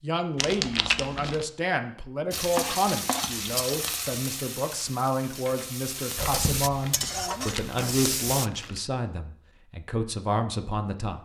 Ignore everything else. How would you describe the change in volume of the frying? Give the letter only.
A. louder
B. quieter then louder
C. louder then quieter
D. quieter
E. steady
B.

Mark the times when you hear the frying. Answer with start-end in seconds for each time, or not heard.
2.3-8.5.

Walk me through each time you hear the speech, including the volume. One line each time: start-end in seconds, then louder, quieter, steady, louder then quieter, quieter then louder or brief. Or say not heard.
0.0-11.2 steady.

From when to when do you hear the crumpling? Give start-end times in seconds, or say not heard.
0.3-1.4, 6.2-8.8.